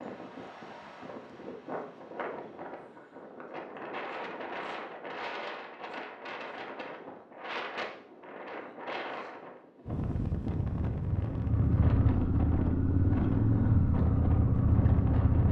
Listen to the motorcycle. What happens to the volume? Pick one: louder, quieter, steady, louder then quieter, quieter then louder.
steady.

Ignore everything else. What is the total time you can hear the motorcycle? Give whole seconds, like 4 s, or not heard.
4 s.